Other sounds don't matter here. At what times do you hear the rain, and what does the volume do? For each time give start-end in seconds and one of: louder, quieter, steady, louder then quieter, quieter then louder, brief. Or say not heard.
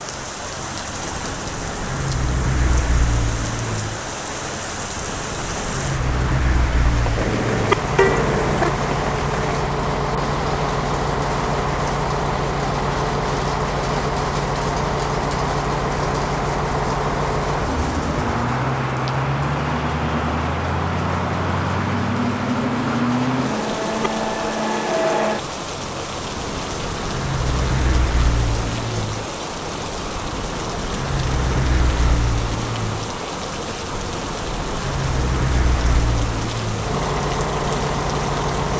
0.0-38.7 steady.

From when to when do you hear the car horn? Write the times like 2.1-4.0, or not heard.
7.2-8.7, 23.5-24.1.